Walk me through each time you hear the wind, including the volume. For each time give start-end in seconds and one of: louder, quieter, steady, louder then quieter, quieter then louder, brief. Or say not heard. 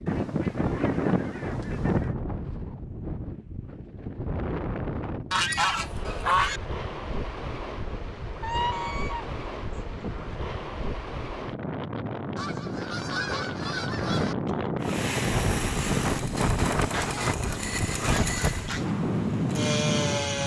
0.0-20.4 louder.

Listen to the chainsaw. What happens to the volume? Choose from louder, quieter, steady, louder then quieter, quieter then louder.
steady.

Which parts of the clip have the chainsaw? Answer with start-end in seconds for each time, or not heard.
14.8-20.4.